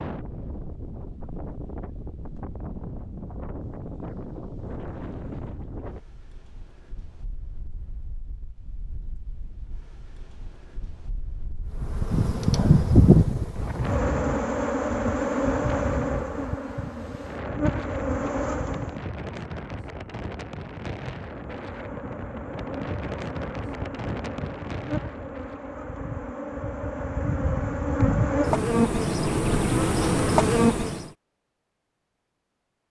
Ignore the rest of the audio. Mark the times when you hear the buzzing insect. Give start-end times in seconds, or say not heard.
11.8-18.9, 21.2-31.1.